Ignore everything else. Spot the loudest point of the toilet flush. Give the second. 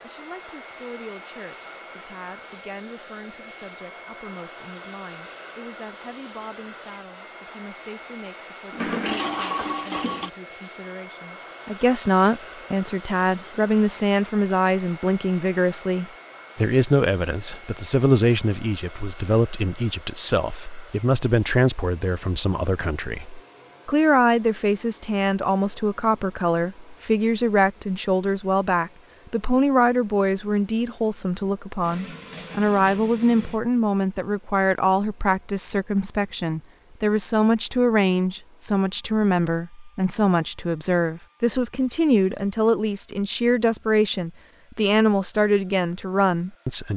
9 s.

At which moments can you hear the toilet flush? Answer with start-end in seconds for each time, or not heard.
8.7-10.3, 31.8-33.6.